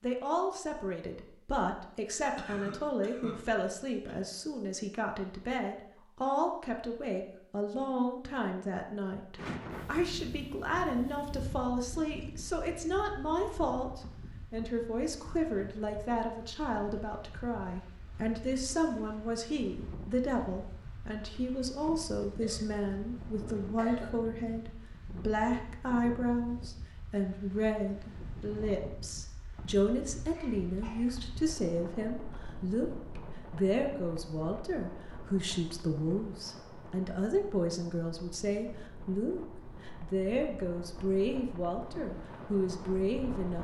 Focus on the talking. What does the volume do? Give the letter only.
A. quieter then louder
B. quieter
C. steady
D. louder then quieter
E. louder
C.